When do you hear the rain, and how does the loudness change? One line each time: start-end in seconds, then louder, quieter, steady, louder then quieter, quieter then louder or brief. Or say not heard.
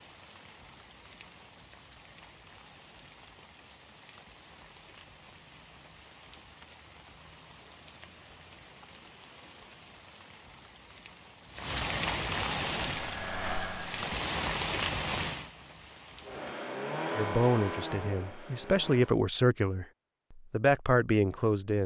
0.0-16.6 louder.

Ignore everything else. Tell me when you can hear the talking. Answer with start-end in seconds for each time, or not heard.
17.1-21.8.